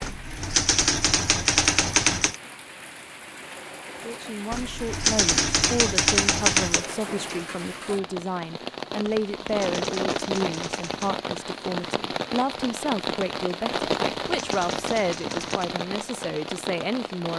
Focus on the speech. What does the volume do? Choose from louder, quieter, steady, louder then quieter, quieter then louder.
steady.